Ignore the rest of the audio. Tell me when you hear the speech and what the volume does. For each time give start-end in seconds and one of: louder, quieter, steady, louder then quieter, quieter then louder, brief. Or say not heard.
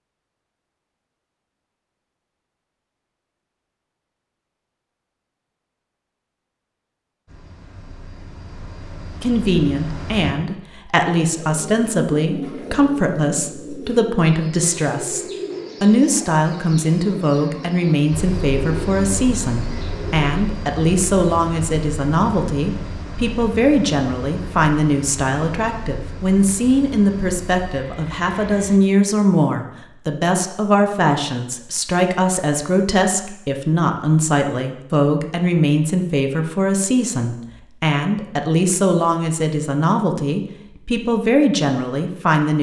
9.2-42.5 steady.